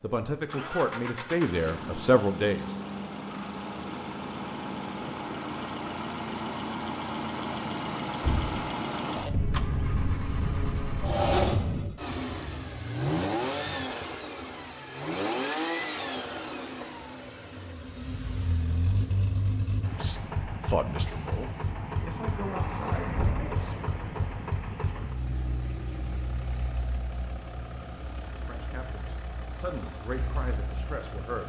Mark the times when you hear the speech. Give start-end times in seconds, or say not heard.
0.0-2.6, 20.0-23.9, 28.3-31.4.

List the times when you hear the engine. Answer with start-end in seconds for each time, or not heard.
0.0-31.4.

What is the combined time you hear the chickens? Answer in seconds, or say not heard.
not heard.